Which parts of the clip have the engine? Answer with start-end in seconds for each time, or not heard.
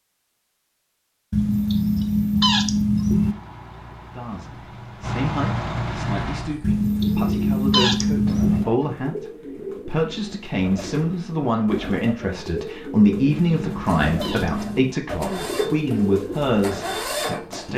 3.0-6.5, 13.6-17.7.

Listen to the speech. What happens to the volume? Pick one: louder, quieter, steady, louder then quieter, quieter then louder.
louder.